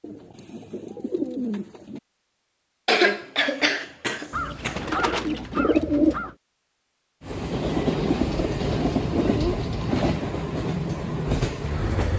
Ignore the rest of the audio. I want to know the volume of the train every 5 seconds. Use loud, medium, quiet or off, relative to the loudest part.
off, loud, loud.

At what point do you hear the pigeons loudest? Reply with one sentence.
The loudest moment of the pigeons is at 6 seconds.